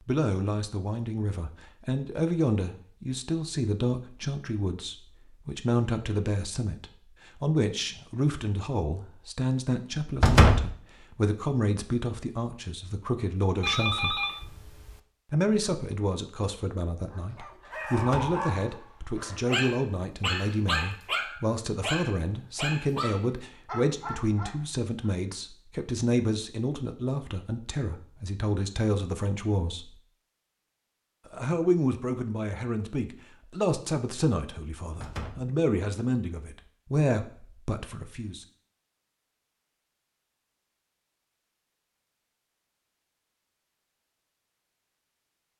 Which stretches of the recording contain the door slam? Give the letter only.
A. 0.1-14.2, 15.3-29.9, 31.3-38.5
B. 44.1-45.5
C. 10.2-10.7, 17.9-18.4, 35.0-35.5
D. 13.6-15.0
C.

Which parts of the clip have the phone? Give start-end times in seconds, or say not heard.
13.6-15.0.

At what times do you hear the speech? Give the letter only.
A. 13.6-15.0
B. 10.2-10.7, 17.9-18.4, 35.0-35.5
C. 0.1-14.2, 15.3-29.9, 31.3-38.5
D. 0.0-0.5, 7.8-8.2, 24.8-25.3
C.